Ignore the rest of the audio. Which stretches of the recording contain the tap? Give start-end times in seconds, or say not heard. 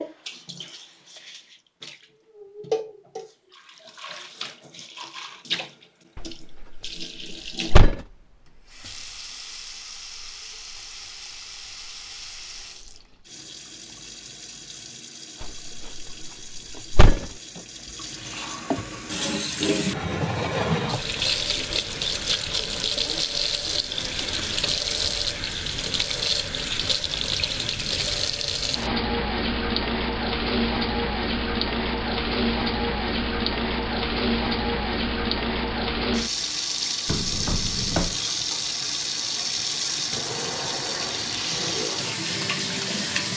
0.0-43.3.